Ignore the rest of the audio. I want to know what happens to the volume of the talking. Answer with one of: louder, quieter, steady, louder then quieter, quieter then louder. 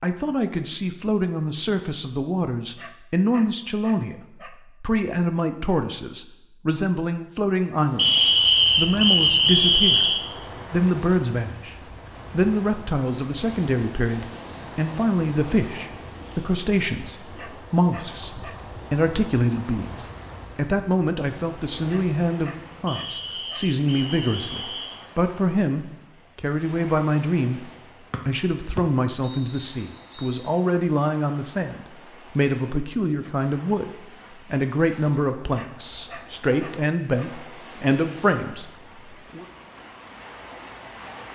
steady.